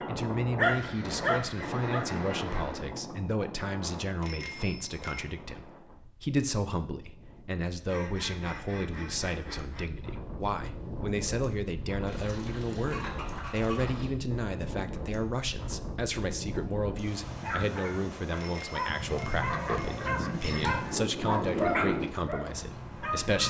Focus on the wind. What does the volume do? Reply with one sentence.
The loudness of the wind goes down, then up.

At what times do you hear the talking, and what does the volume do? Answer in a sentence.
You can hear the talking from 0.1 to 23.4 s, at a steady volume.